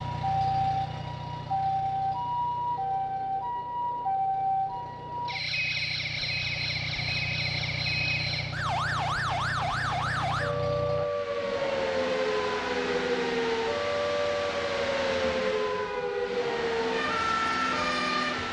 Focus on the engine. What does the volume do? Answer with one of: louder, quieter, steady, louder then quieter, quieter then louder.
louder.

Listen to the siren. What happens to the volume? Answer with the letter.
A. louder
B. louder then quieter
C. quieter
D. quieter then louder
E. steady
E.